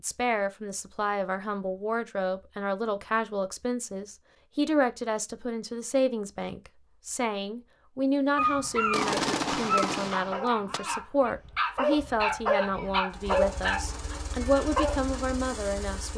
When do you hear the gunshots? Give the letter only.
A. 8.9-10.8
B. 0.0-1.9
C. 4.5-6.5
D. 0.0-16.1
A.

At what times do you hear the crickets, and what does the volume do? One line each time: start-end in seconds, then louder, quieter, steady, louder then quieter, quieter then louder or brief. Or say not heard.
not heard.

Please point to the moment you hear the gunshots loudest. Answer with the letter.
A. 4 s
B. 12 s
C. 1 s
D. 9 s
D.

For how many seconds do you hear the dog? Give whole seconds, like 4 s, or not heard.
7 s.